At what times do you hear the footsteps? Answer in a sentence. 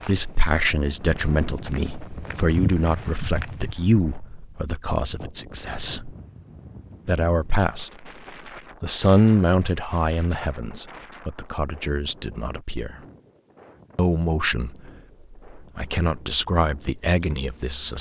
The footsteps can be heard from 0.0 to 3.8 s.